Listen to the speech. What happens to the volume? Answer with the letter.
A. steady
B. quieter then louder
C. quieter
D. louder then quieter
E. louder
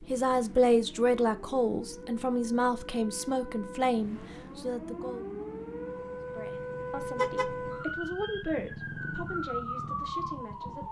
C.